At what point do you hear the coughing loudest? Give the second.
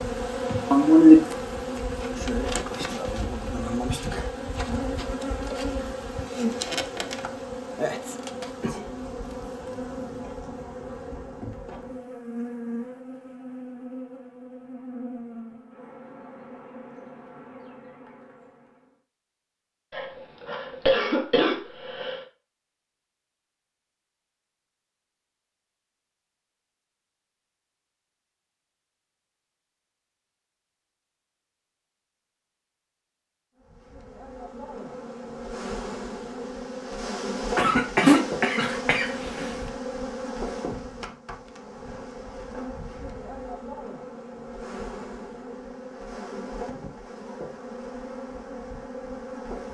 1 s.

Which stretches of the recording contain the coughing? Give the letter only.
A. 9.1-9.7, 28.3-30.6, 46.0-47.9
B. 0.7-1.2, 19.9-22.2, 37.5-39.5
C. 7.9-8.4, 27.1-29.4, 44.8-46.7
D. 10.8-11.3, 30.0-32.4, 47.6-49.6
B.